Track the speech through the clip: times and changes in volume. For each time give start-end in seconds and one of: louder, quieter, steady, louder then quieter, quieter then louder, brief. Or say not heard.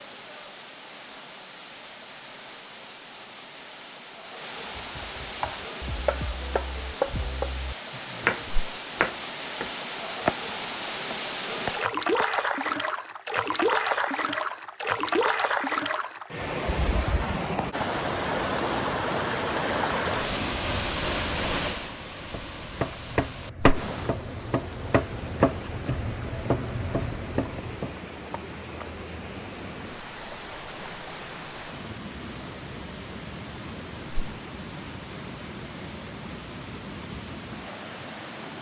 not heard.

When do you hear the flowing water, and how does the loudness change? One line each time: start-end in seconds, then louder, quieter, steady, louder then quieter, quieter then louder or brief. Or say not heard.
0.0-38.5 louder then quieter.